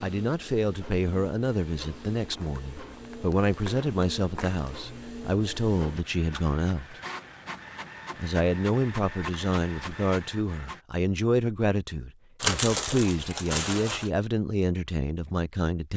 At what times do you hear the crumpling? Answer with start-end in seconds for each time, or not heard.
2.1-4.8, 12.4-14.1.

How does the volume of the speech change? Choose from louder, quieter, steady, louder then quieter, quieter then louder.
steady.